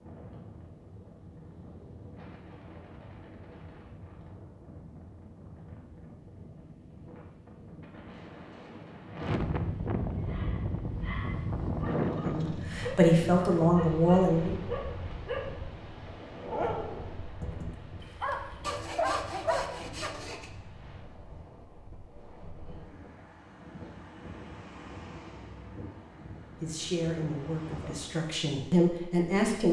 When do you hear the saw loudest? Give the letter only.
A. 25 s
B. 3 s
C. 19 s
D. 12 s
C.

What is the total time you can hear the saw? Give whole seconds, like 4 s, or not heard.
2 s.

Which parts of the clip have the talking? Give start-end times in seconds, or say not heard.
12.2-14.6, 26.6-29.6.